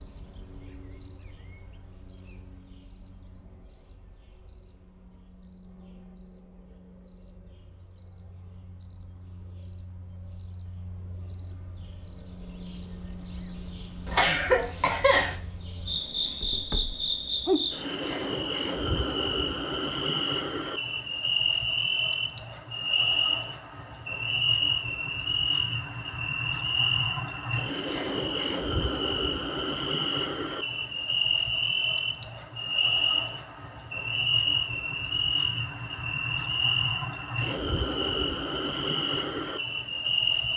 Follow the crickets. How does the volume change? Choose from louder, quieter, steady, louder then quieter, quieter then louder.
louder.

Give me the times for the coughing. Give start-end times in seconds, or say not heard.
14.1-15.3.